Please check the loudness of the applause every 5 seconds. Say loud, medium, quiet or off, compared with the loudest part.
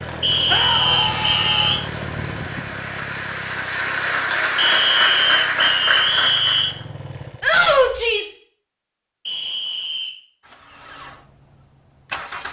medium, loud, off.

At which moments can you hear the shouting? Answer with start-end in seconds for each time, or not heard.
0.5-1.8, 7.4-8.3.